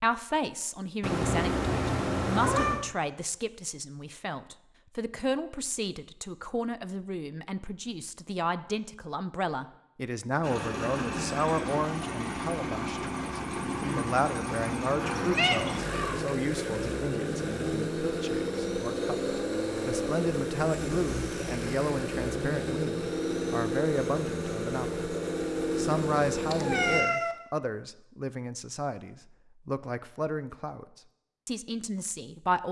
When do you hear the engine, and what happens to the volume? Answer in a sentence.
The engine can be heard from 10.4 to 27.1 s, at a steady volume.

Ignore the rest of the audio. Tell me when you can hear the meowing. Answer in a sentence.
The meowing can be heard from 1.0 to 2.9 s, from 15.0 to 16.2 s and from 26.5 to 27.4 s.